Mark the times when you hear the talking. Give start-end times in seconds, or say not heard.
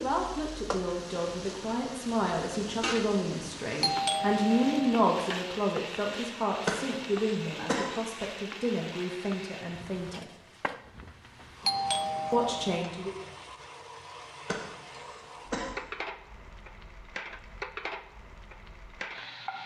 0.0-10.2, 12.3-13.2.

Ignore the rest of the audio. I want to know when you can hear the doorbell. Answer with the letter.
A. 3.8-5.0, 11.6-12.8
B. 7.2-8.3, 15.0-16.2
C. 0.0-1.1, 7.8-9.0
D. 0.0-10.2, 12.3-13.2
A.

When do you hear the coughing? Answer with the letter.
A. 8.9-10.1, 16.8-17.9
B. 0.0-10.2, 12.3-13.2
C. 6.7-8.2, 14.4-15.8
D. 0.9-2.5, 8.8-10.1
C.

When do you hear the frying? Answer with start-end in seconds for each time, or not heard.
0.0-19.6.